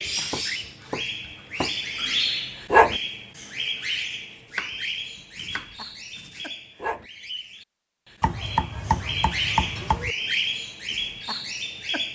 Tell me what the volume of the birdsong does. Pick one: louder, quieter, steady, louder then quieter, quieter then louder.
quieter then louder.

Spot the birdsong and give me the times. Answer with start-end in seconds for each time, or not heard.
0.0-12.1.